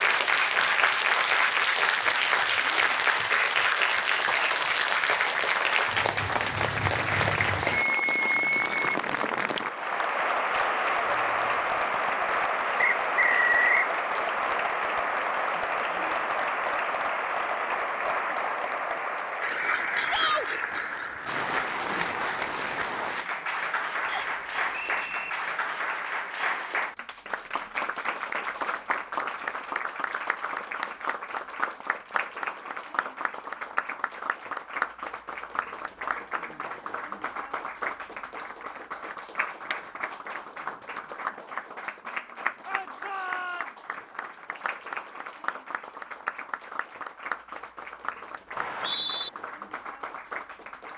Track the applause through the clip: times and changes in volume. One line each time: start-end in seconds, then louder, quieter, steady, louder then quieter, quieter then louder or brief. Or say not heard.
0.0-50.9 quieter.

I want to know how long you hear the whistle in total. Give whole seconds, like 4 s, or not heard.
3 s.